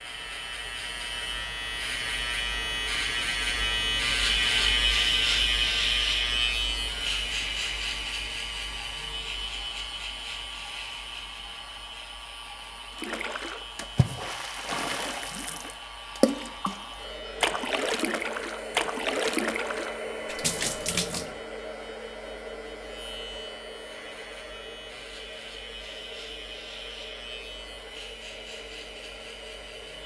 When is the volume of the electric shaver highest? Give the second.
5 s.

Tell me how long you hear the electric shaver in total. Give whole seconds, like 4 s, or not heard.
30 s.